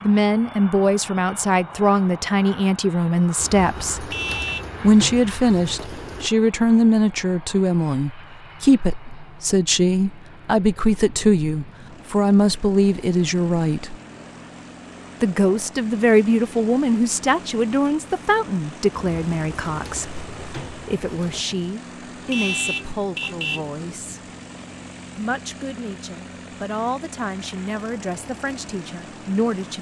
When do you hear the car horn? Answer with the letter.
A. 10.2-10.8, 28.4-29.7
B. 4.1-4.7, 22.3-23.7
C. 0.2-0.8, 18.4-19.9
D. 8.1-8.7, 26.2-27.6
B.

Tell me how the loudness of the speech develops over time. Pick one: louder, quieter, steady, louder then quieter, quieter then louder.
quieter.